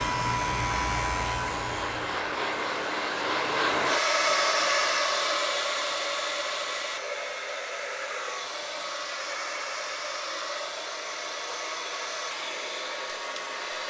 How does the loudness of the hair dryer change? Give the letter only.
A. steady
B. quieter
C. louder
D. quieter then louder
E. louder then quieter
E.